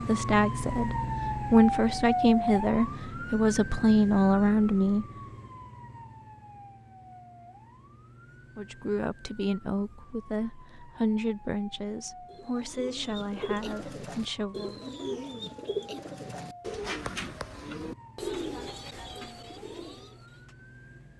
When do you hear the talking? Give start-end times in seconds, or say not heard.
0.0-5.0, 8.6-14.8.